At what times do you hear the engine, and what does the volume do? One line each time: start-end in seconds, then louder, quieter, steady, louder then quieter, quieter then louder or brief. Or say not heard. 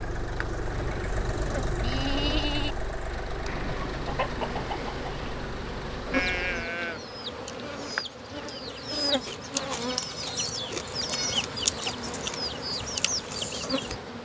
0.0-6.7 quieter.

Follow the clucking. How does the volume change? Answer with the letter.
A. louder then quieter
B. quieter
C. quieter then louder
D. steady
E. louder
C.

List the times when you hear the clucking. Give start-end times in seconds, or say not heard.
3.5-14.0.